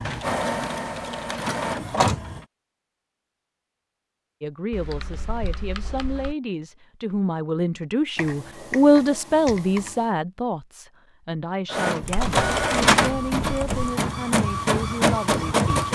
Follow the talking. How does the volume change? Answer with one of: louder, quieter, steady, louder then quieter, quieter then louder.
louder then quieter.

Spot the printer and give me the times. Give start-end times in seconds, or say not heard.
0.0-2.4, 11.7-15.9.